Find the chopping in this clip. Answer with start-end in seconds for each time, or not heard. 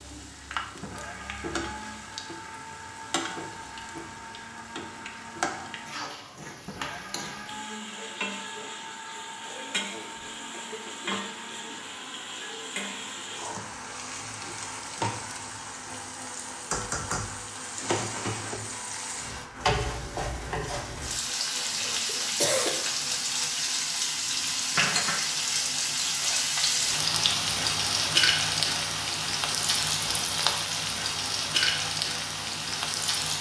not heard.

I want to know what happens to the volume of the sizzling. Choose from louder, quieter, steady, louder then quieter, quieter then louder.
louder.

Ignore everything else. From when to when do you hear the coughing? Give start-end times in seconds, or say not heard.
9.8-11.8, 21.6-22.9.